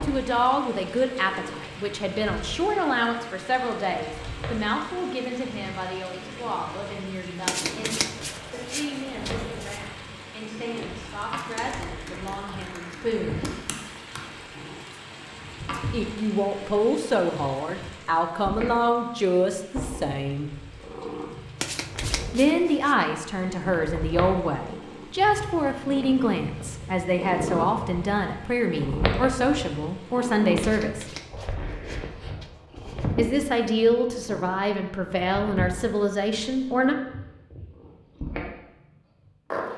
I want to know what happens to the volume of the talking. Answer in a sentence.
The loudness of the talking goes down, then up.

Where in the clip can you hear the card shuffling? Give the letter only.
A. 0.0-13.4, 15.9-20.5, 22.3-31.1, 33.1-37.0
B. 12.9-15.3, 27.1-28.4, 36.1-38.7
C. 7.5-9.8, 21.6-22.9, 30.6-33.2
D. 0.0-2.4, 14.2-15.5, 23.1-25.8
C.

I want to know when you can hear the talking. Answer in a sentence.
The talking can be heard from 0.0 to 13.4 s, from 15.9 to 20.5 s, from 22.3 to 31.1 s and from 33.1 to 37.0 s.